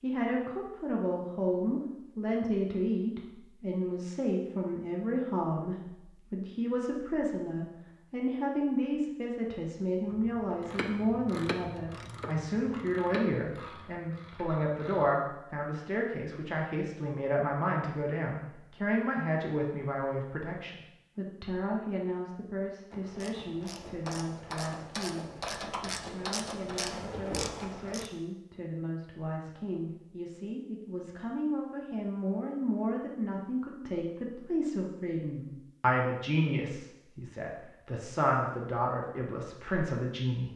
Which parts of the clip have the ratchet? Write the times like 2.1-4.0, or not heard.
10.1-15.2, 22.9-28.1.